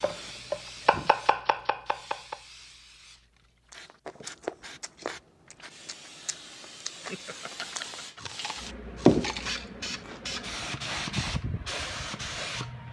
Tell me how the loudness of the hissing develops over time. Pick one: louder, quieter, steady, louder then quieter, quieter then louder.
louder then quieter.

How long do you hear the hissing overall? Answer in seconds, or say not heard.
13 s.